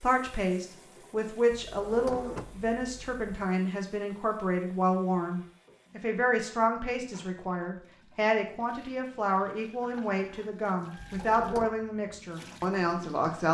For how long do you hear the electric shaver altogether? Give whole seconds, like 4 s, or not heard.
not heard.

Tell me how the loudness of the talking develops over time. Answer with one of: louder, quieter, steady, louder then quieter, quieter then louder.
steady.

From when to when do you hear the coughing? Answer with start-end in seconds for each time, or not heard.
not heard.